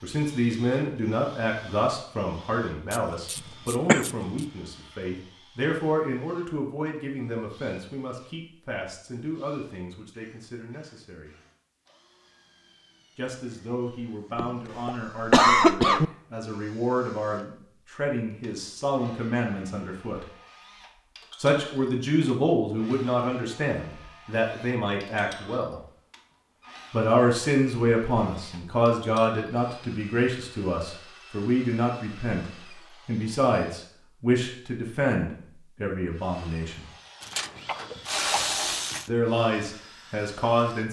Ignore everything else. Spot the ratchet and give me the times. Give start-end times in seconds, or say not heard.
2.9-4.5, 37.2-39.1.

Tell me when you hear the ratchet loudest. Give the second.
38 s.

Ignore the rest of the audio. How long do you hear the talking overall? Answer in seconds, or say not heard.
34 s.